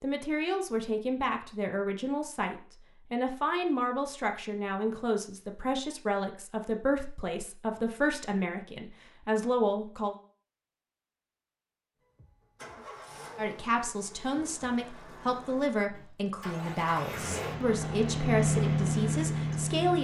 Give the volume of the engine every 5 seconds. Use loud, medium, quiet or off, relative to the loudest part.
off, off, quiet, loud.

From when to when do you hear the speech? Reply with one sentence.
The speech can be heard from 0.0 to 10.2 s and from 13.3 to 19.9 s.